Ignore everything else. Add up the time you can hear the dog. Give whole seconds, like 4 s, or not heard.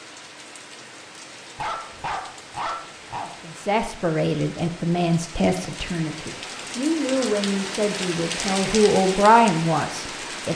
2 s.